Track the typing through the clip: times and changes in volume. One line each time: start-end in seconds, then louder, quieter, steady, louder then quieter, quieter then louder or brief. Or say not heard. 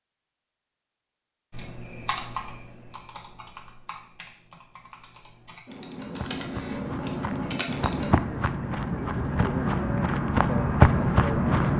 1.5-8.2 quieter then louder.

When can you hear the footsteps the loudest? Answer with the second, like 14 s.
11 s.